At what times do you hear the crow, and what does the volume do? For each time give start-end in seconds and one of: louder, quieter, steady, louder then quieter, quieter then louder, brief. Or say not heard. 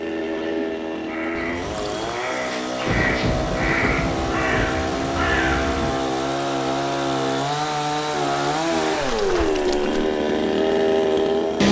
0.3-5.9 louder.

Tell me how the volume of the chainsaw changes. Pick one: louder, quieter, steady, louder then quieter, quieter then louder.
louder.